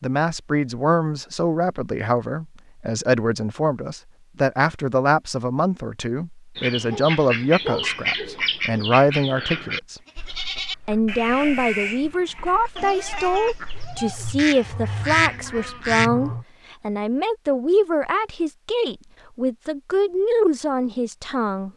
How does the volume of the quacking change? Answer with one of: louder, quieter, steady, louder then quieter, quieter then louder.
quieter then louder.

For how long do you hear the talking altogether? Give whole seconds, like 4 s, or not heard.
21 s.